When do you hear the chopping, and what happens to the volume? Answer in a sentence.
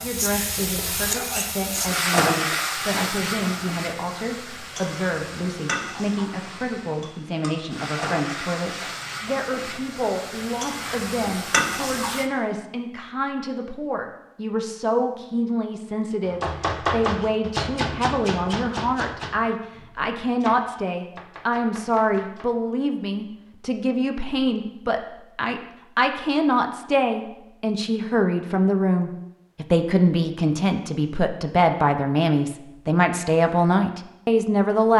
You can hear the chopping from 16.2 to 22.6 s, getting quieter.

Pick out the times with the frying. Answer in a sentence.
You can hear the frying from 0.0 to 12.2 s.